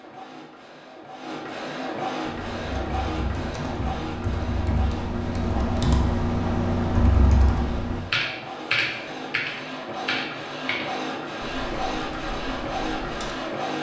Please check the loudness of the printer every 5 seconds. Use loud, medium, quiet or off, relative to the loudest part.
loud, medium, loud.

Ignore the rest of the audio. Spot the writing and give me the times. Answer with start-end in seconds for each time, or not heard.
not heard.